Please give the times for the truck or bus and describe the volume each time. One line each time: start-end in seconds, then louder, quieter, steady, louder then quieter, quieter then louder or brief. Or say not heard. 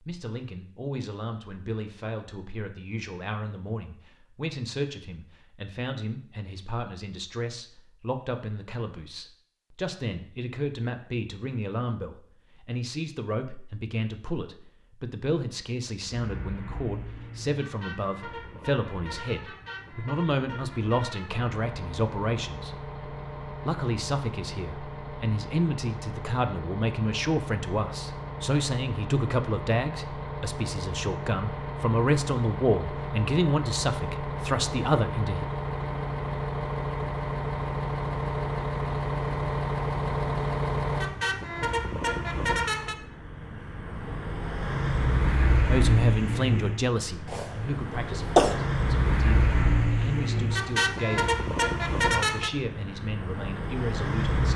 16.0-54.5 louder.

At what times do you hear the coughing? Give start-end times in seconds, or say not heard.
47.2-48.5.